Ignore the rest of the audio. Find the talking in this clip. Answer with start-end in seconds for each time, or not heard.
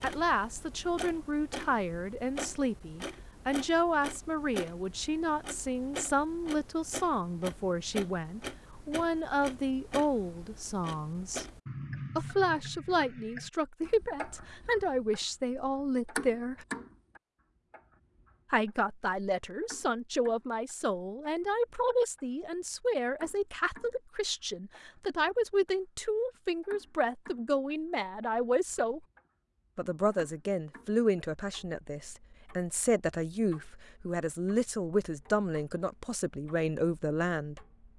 0.0-11.4, 12.2-16.6, 18.5-29.0, 29.8-37.6.